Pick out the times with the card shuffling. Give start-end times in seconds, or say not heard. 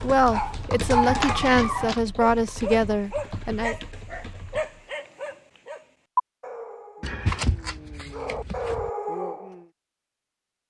1.0-2.0, 7.0-8.9.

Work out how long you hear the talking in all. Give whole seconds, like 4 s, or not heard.
4 s.